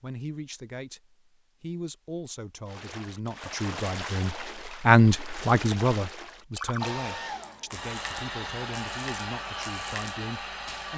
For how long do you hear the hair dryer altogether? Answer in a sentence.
You can hear the hair dryer for 4 seconds altogether.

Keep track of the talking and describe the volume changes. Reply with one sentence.
The loudness of the talking goes up, then down.